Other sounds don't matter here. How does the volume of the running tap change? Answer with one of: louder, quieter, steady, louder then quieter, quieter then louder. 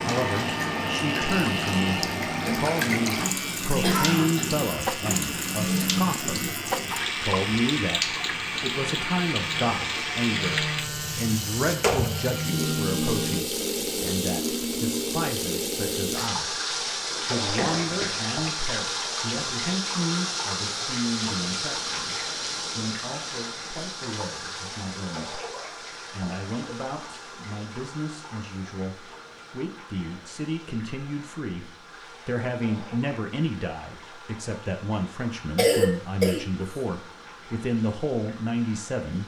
quieter.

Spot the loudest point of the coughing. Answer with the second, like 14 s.
36 s.